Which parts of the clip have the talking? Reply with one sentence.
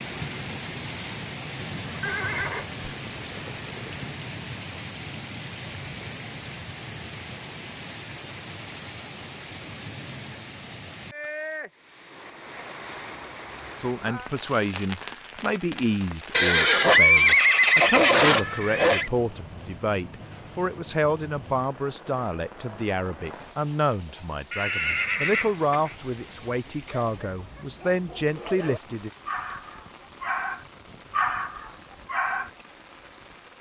The talking can be heard from 13.8 to 29.1 s.